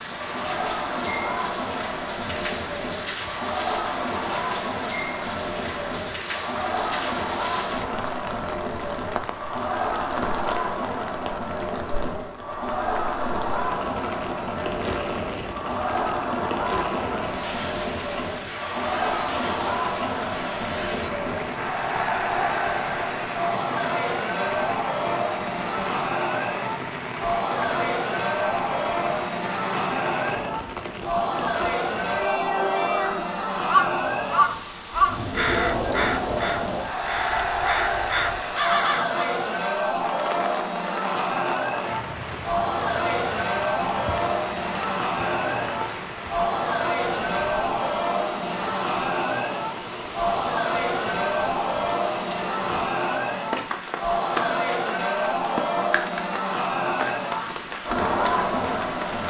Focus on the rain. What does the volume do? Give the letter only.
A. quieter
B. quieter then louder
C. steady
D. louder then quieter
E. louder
C.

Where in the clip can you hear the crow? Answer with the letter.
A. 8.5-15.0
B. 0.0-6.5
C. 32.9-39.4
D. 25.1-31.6
C.